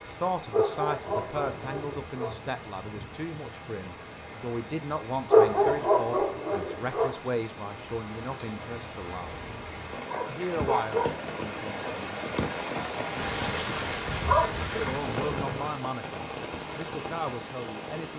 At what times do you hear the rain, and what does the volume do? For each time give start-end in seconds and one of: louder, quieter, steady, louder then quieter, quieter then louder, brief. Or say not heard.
0.0-18.1 louder.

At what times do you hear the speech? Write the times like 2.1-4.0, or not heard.
0.0-9.3, 10.3-12.2, 14.8-18.1.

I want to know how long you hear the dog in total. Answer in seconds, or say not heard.
6 s.